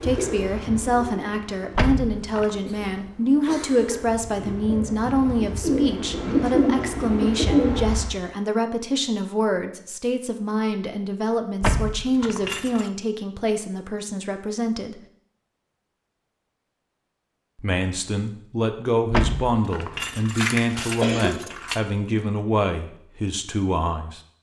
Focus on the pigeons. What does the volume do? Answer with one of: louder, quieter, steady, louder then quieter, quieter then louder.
quieter then louder.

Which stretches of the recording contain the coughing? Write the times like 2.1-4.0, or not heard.
2.6-4.0, 20.5-21.5.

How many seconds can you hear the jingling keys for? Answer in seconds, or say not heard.
5 s.